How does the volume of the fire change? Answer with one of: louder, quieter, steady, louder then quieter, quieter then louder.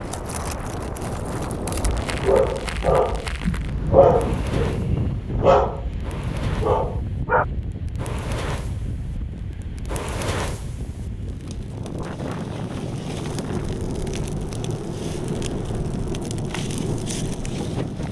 louder.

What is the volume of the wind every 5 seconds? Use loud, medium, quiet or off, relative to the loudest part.
loud, loud, medium, medium.